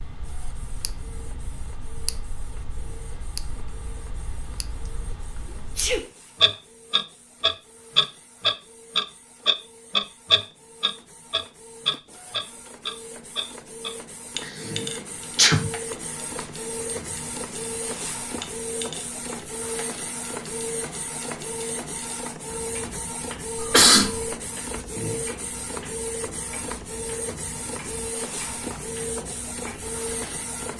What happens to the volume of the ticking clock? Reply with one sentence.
The volume of the ticking clock goes up, then down.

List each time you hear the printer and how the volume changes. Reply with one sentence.
You can hear the printer from 0.1 to 30.7 s, getting louder.